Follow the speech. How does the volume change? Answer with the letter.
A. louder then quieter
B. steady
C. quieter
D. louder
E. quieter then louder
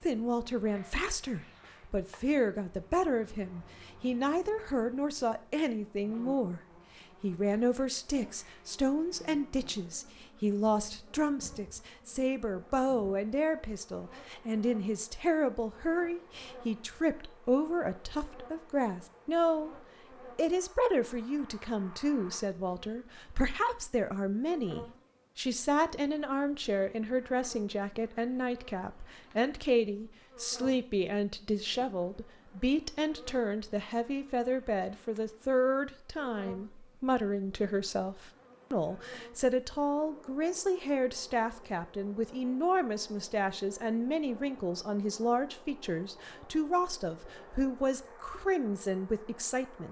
B.